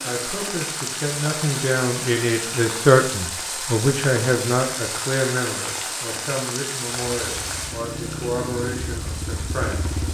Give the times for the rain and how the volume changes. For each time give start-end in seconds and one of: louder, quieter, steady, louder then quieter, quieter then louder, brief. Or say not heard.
0.0-10.0 quieter.